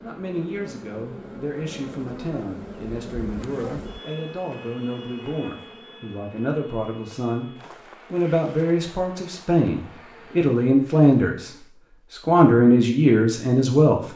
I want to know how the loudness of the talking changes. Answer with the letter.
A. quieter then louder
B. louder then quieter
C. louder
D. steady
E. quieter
C.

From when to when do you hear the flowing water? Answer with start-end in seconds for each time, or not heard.
not heard.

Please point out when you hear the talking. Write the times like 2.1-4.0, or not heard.
0.0-14.0.